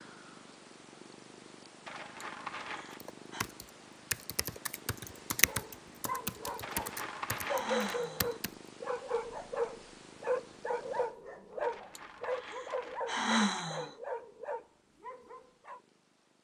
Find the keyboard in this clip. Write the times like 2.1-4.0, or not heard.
3.0-8.6.